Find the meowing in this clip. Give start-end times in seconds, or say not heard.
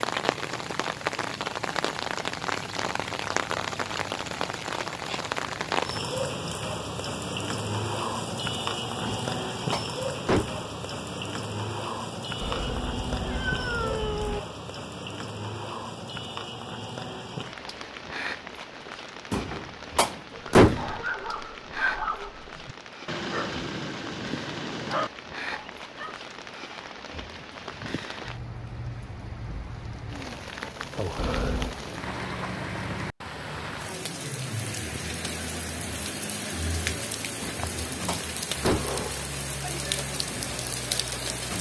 12.4-14.4, 31.1-31.8.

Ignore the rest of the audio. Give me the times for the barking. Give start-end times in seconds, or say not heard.
20.3-26.1.